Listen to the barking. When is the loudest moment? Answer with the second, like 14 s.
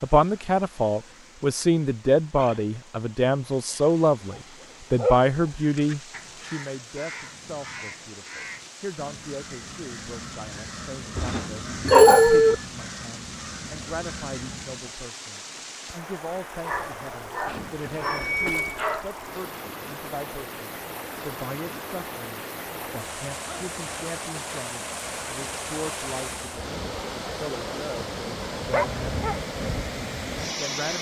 12 s.